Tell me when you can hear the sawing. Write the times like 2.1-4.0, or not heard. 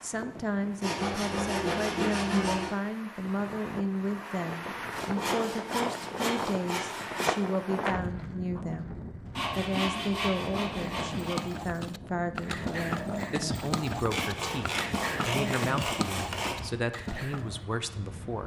0.8-2.8, 4.8-7.4, 9.3-11.3, 14.1-16.7.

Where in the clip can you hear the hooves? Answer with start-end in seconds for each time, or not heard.
10.7-17.6.